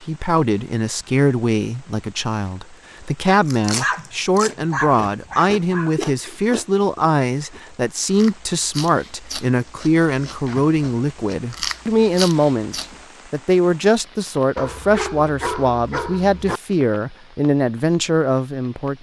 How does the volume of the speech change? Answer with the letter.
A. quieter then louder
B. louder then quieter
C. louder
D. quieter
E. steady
E.